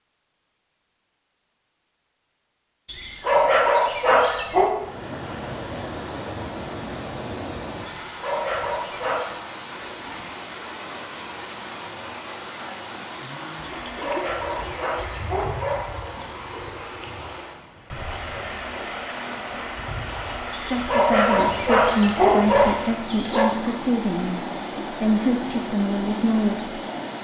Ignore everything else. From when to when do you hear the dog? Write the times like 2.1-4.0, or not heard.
2.9-4.7, 8.1-9.3, 13.8-16.1, 20.5-23.5.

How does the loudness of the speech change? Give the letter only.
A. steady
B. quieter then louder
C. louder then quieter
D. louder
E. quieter
A.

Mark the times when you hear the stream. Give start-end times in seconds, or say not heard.
4.6-27.1.